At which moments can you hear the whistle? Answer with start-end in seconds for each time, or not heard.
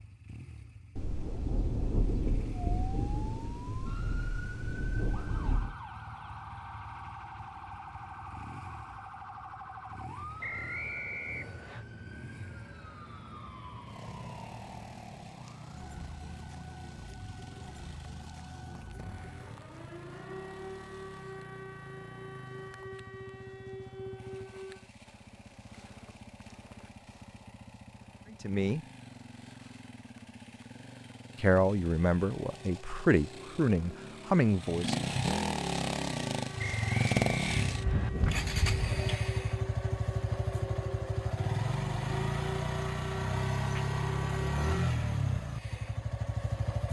10.4-11.8, 36.5-38.1.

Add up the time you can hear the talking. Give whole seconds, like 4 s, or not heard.
4 s.